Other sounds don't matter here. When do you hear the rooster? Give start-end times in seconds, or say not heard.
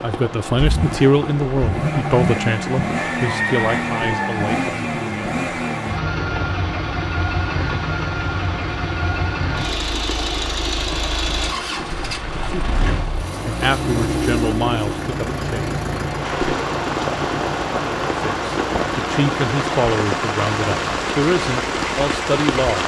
2.9-4.5.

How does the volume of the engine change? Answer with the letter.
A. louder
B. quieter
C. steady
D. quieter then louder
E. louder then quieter
B.